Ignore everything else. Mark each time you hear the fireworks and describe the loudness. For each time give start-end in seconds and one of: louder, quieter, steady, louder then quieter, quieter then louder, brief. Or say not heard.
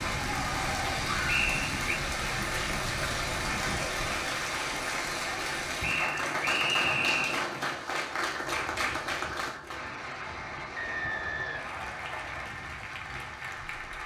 not heard.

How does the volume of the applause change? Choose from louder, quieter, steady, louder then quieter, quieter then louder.
quieter.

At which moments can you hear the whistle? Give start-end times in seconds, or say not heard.
1.2-2.0, 5.8-7.5, 10.8-12.5.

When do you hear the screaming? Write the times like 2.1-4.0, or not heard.
not heard.